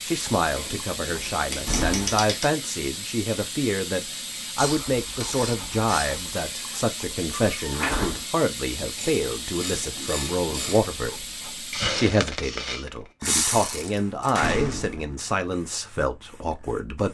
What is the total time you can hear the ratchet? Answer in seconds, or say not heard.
7 s.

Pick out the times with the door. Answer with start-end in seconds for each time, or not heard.
1.4-2.4, 7.5-8.2, 14.3-15.2.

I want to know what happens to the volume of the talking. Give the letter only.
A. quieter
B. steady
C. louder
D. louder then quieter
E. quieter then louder
B.